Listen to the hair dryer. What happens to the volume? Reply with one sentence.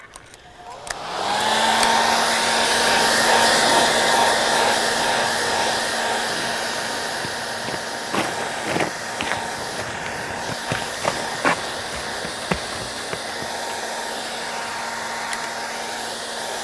The loudness of the hair dryer goes down.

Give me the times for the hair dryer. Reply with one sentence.
You can hear the hair dryer from 0.0 to 16.5 s.